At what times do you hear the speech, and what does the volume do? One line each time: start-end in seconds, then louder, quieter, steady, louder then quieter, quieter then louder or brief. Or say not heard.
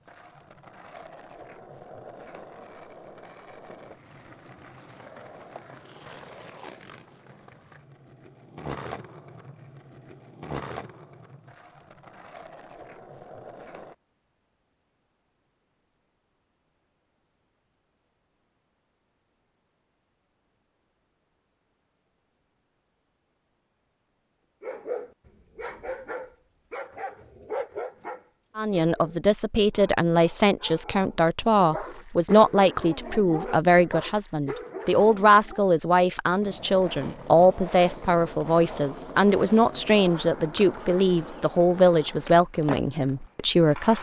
28.6-43.9 steady.